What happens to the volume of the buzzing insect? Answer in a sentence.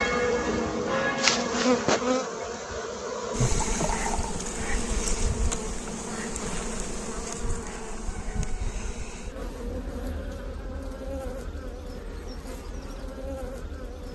The loudness of the buzzing insect goes down.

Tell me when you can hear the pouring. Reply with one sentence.
You can hear the pouring from 3.5 to 4.3 s.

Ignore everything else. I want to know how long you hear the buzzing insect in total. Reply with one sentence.
You can hear the buzzing insect for 14 seconds altogether.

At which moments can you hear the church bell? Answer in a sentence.
The church bell can be heard from 0.0 to 2.5 s.